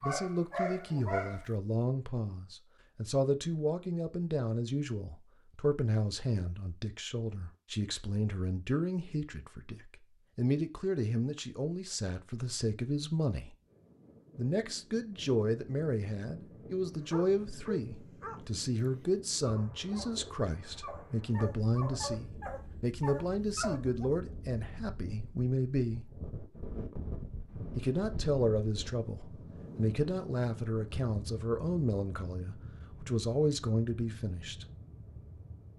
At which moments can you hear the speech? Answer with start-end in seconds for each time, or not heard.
0.0-13.5, 14.3-26.1, 27.8-34.6.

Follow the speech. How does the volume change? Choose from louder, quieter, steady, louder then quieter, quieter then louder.
steady.